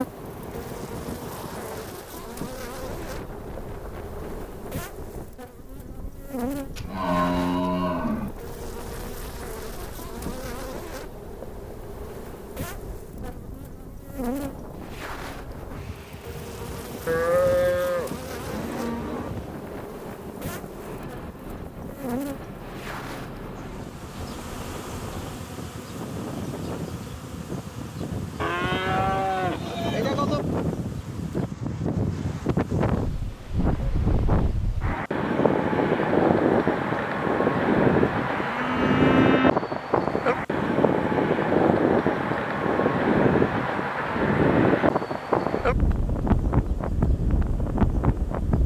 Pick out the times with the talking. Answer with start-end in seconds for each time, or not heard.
not heard.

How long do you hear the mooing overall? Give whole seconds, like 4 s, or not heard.
7 s.